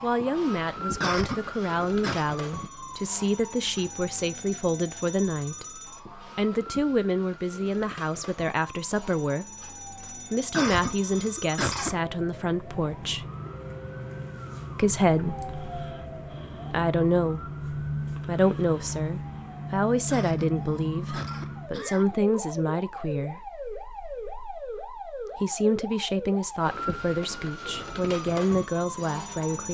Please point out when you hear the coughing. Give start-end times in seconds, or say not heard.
1.0-2.2, 10.5-12.0, 20.1-22.1.